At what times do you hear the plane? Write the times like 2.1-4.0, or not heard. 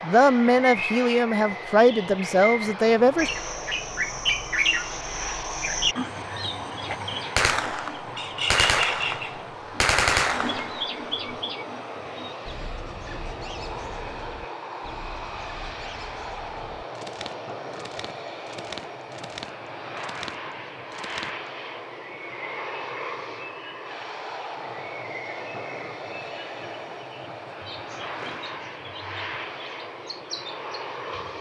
0.0-31.3.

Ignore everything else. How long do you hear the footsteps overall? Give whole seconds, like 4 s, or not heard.
not heard.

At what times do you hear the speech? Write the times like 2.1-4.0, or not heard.
0.0-3.3.